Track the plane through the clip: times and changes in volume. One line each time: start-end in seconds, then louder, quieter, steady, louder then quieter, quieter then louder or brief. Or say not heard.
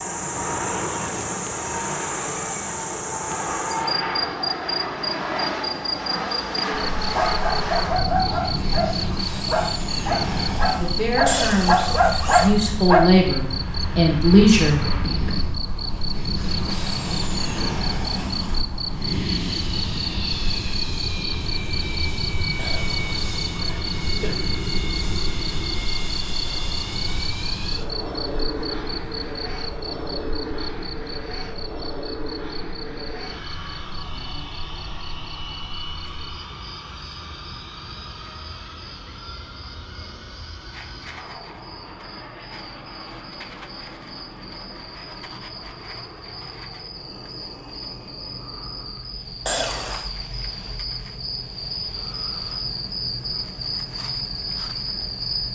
0.0-55.5 quieter.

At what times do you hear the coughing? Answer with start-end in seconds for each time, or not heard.
11.2-12.6, 22.6-24.4, 49.5-50.1.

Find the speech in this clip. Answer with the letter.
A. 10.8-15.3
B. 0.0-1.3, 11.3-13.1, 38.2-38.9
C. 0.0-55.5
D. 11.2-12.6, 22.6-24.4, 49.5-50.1
A.